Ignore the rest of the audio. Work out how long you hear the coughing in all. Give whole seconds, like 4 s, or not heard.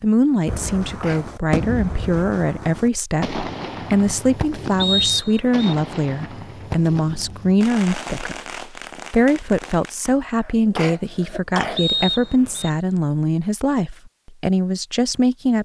2 s.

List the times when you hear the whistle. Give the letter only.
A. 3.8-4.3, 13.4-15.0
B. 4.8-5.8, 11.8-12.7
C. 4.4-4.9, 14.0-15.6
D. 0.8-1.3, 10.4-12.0
B.